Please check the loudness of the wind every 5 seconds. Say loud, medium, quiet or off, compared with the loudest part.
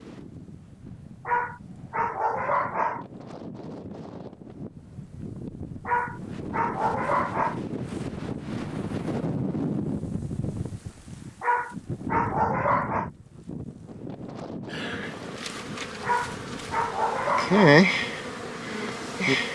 medium, loud, loud, medium.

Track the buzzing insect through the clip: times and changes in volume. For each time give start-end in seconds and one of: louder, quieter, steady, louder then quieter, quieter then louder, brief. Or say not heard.
14.7-19.5 louder then quieter.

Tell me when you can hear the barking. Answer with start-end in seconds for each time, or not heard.
1.2-3.0, 5.8-7.6, 11.4-13.1, 16.0-17.8.